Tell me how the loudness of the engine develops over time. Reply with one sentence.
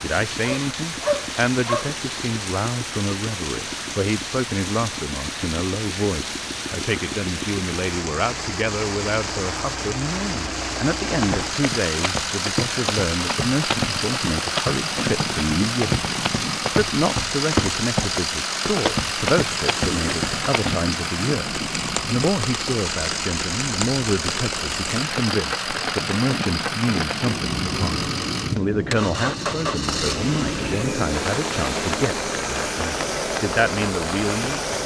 The volume of the engine goes up.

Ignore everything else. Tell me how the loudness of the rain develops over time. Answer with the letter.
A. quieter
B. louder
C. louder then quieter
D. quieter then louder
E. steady
E.